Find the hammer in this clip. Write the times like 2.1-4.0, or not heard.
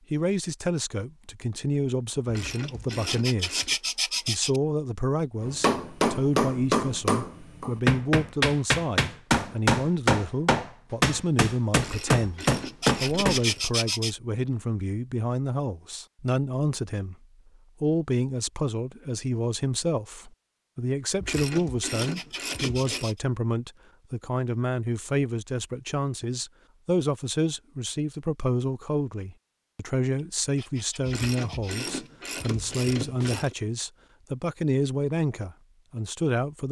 5.4-13.4.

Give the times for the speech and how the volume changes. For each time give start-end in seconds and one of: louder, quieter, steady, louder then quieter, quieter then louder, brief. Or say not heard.
0.1-17.1 steady
17.8-36.6 steady.